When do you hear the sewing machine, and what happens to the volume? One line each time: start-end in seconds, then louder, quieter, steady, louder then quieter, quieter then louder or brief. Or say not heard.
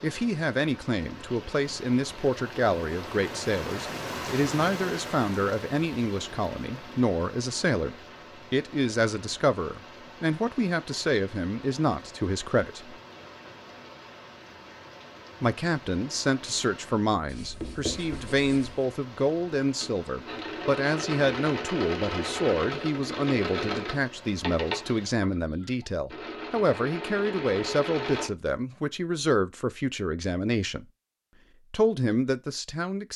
19.8-28.3 quieter then louder.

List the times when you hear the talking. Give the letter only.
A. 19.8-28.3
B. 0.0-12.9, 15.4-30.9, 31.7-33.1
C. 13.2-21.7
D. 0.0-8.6
B.